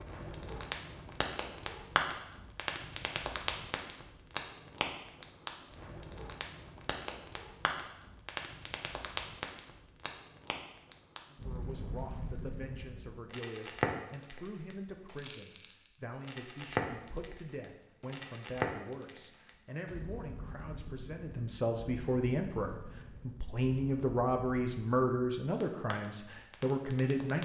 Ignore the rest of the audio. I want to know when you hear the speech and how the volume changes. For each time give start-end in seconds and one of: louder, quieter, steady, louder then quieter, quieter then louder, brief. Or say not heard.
11.2-27.3 louder.